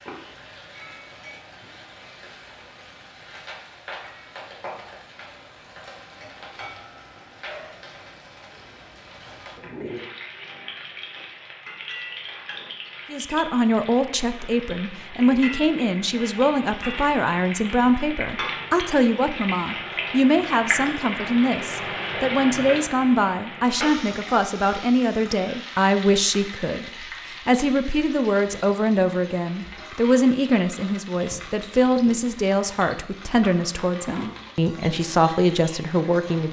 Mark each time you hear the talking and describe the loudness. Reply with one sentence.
The talking can be heard from 13.1 to 36.4 s, at a steady volume.